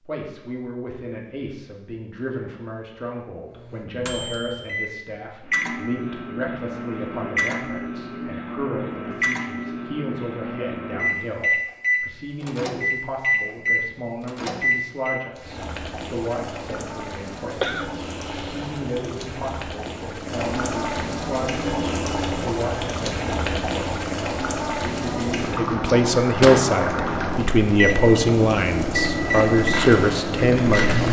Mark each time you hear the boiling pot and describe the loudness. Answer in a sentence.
You can hear the boiling pot from 15.3 to 31.0 s, getting louder.